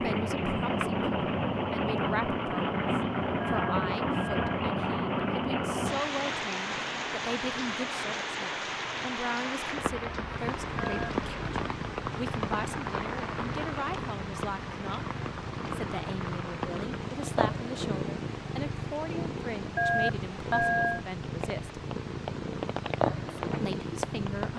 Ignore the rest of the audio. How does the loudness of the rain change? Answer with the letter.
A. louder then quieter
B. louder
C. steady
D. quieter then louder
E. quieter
E.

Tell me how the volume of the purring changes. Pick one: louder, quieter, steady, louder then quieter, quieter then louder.
louder.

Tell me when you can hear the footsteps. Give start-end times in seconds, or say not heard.
not heard.